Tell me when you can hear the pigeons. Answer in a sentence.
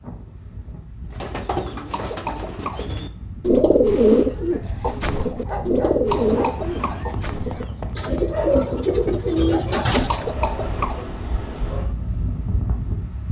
The pigeons can be heard from 1.1 to 10.2 s.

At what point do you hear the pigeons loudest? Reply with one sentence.
The loudest moment of the pigeons is at 4 seconds.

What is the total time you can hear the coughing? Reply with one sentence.
You can hear the coughing for 3 seconds altogether.